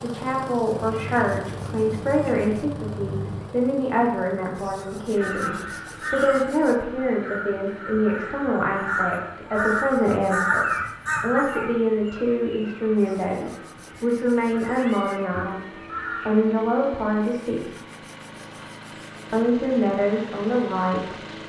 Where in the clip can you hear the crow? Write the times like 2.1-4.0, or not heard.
4.8-16.7.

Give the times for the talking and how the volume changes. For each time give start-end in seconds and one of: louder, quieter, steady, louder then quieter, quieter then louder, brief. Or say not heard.
0.0-17.6 steady
19.3-21.2 brief.